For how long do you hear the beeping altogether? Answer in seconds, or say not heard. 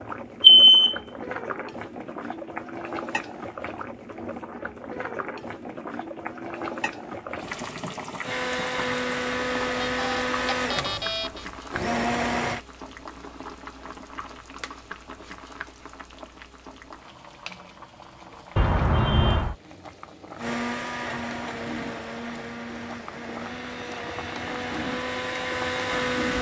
3 s.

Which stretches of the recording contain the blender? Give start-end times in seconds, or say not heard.
8.2-12.6, 20.4-26.3.